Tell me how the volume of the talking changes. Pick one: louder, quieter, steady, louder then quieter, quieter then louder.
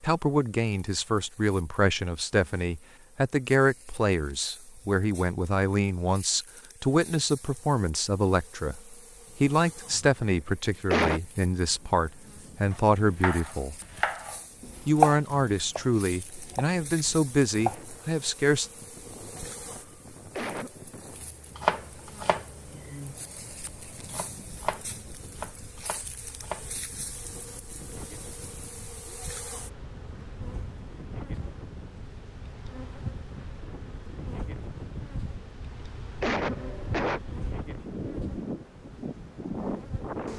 steady.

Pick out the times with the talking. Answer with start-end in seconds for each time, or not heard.
0.0-13.8, 14.8-18.7.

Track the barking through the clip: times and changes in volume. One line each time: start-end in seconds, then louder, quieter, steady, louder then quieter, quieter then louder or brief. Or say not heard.
not heard.